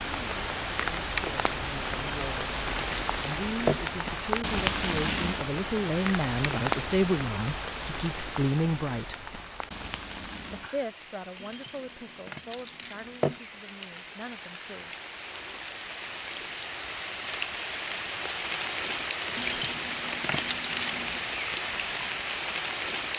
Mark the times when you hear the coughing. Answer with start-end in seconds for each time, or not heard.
not heard.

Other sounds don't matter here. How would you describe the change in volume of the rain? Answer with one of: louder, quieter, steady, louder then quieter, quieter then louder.
quieter then louder.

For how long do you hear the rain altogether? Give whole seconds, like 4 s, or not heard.
23 s.